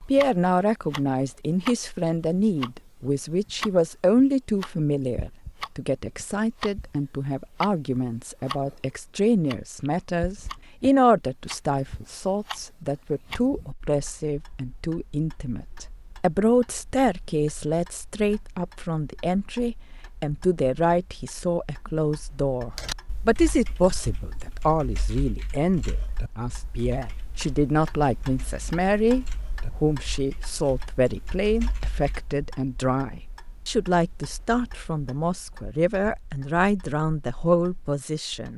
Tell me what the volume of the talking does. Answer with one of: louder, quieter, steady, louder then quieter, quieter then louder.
steady.